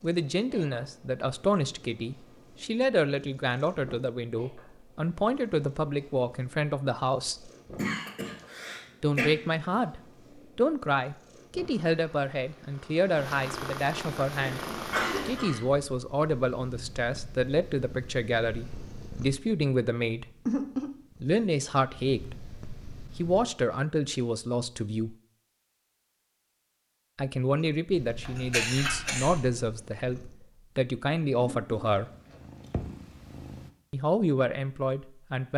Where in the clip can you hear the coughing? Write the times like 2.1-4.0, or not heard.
7.8-9.3, 14.4-15.7, 28.2-29.4.